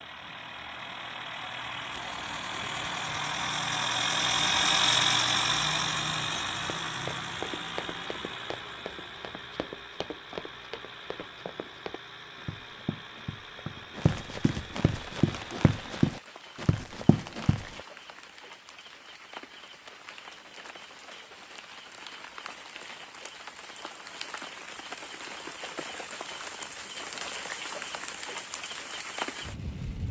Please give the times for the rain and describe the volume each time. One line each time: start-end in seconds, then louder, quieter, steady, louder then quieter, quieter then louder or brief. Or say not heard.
14.8-30.0 louder.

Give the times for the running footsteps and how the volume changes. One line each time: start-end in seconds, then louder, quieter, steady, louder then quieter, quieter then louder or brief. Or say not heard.
6.8-17.8 louder.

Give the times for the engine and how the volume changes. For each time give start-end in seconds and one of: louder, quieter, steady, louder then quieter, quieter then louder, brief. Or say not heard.
0.0-16.1 louder then quieter.